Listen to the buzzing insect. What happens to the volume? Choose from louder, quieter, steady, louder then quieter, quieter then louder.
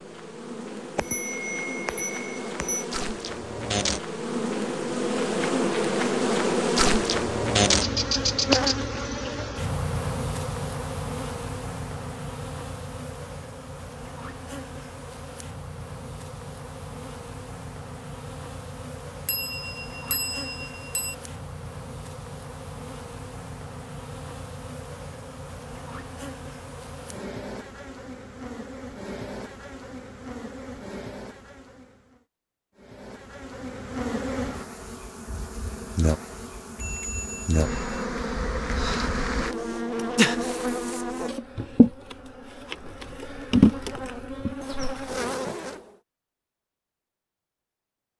quieter then louder.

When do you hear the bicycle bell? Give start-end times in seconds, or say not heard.
0.9-2.9, 19.2-21.1, 36.8-38.0.